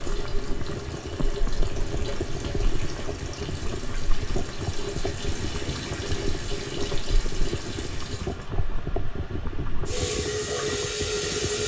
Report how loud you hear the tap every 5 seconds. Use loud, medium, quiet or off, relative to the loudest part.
medium, medium, loud.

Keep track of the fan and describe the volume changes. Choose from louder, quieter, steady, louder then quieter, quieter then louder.
steady.